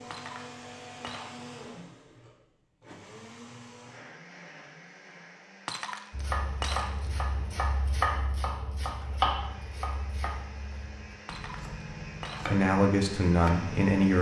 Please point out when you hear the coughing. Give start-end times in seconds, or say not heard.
not heard.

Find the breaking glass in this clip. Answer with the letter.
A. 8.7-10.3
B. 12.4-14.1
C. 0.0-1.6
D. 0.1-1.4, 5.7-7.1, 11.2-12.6
D.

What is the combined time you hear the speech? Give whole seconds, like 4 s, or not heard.
2 s.